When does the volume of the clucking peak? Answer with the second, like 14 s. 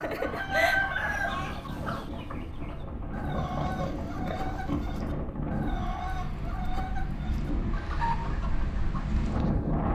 1 s.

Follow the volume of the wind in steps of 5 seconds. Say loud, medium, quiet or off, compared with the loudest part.
medium, loud.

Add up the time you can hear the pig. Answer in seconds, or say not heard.
2 s.